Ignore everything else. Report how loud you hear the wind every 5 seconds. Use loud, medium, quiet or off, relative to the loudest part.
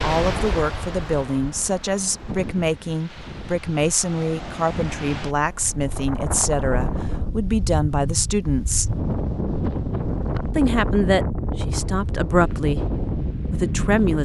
medium, loud, loud.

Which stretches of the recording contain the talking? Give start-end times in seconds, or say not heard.
0.0-8.9, 10.6-14.2.